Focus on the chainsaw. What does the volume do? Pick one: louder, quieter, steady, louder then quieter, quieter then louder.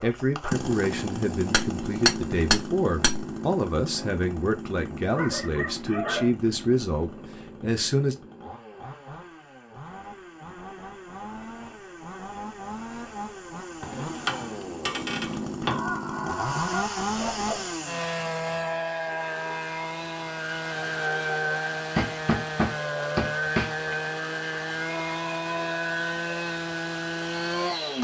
quieter then louder.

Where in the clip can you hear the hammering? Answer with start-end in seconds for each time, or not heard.
1.5-3.2, 13.8-15.8, 21.9-23.9.